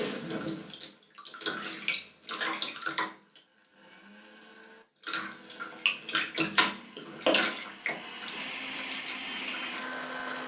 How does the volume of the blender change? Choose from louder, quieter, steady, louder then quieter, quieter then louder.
louder.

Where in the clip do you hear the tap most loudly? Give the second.
7 s.